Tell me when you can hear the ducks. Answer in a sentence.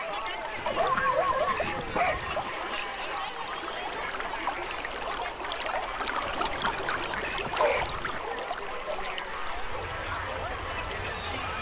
You can hear the ducks from 0.6 to 2.5 s and from 6.2 to 8.2 s.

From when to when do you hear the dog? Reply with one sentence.
The dog can be heard from 0.7 to 2.2 s and from 7.5 to 8.9 s.